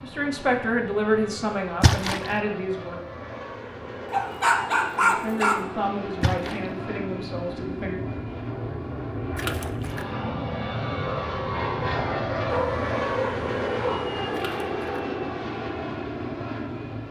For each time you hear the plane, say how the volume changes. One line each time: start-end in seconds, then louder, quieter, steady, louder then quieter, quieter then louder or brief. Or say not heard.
0.0-17.0 louder.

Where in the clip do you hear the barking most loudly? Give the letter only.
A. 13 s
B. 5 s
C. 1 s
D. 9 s
B.